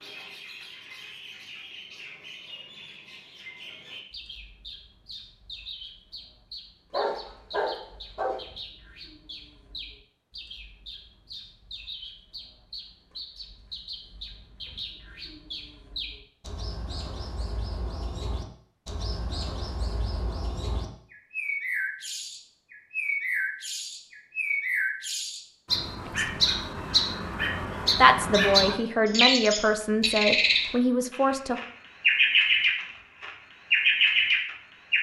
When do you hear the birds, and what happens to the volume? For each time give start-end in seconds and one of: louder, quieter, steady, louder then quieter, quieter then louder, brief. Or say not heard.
0.0-34.9 louder.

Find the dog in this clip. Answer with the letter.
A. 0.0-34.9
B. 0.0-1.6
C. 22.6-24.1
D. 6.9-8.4
D.